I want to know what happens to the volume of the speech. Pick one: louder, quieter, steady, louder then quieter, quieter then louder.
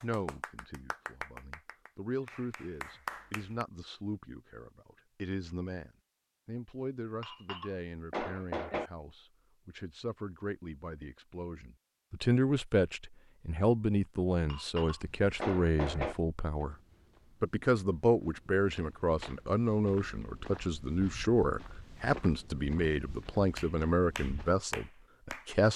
louder.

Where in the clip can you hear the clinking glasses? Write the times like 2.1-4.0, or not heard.
7.2-8.9, 14.4-16.1.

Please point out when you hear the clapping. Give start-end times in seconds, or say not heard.
0.0-3.6, 23.6-25.6.